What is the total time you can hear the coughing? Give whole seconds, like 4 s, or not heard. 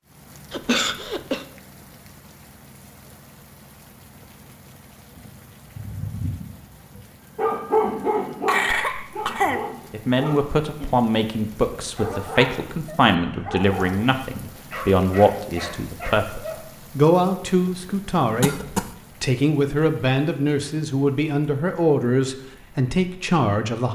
3 s.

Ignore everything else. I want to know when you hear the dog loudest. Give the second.
8 s.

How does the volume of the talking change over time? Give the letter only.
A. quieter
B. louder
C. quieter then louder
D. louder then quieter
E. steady
E.